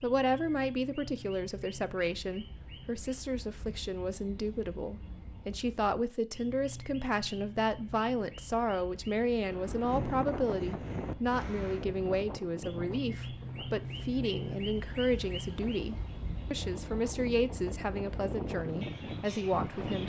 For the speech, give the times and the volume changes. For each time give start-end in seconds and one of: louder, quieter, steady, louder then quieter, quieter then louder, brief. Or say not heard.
0.0-20.0 steady.